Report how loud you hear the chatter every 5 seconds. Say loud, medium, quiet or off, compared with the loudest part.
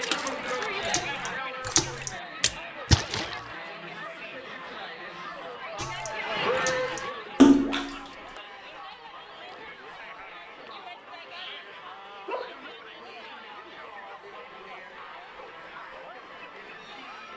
loud, loud, medium, medium.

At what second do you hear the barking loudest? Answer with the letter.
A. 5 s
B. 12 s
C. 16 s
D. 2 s
B.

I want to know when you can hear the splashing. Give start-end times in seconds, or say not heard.
0.0-3.4, 5.8-8.0.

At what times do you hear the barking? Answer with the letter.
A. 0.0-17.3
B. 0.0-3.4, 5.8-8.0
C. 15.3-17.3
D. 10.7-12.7
D.